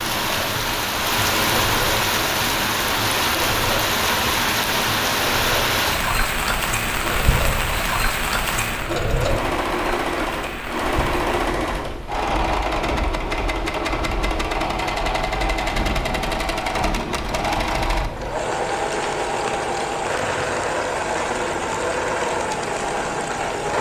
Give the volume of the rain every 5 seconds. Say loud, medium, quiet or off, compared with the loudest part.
loud, loud, quiet, medium, medium.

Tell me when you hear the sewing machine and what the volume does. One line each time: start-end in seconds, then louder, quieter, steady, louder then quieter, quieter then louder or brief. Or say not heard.
0.1-23.7 louder.